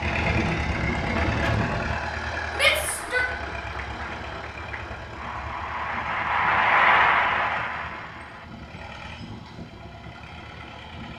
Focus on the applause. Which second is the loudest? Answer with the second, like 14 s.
7 s.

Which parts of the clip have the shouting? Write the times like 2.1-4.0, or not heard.
2.5-3.3.